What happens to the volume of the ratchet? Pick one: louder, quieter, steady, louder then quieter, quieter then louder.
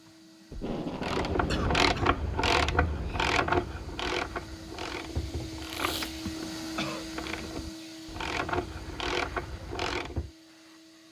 quieter then louder.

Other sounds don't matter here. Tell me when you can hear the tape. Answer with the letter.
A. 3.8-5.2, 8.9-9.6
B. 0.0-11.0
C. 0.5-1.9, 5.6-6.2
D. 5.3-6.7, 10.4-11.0
C.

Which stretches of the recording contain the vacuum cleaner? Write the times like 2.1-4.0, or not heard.
0.0-11.0.